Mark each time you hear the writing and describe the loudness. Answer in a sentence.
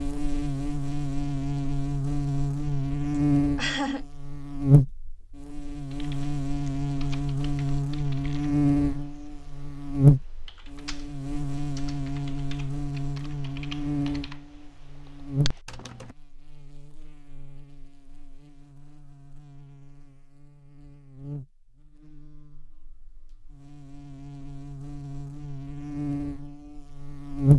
You can't hear the writing here.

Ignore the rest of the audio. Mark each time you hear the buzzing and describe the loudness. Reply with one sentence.
You can hear the buzzing from 0.0 to 27.5 s, getting quieter then louder.